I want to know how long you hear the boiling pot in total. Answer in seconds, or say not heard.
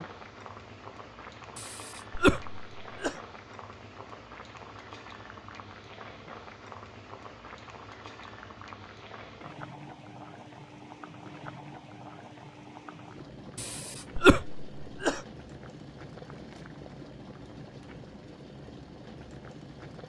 20 s.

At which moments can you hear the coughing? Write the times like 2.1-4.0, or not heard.
1.6-3.1, 13.6-15.2.